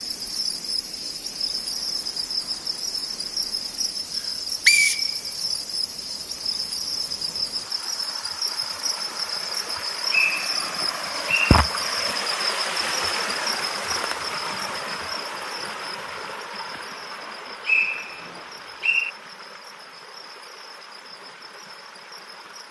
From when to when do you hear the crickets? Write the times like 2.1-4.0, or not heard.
0.0-22.6.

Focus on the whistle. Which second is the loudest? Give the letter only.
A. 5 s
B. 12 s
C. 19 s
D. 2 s
A.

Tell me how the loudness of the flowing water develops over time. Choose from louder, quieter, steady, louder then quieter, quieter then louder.
louder then quieter.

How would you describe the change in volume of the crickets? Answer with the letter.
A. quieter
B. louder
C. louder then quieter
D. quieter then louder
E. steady
A.